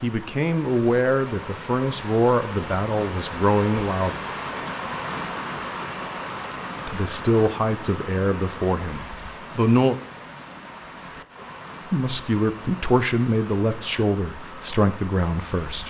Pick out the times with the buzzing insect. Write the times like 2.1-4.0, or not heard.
not heard.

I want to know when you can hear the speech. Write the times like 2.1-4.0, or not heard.
0.0-4.2, 6.8-9.9, 11.9-15.8.